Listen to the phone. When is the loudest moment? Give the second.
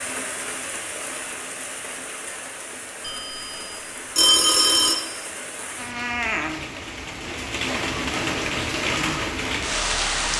4 s.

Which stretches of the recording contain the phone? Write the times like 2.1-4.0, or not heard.
3.0-5.0.